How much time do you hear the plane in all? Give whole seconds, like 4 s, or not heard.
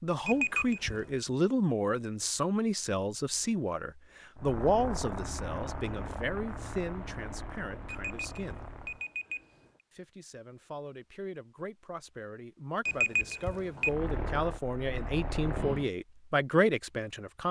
7 s.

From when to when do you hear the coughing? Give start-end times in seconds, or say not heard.
not heard.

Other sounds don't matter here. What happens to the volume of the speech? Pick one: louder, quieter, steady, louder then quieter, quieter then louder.
quieter then louder.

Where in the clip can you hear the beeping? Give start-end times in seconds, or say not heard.
0.2-1.1, 7.8-9.7, 12.8-13.9.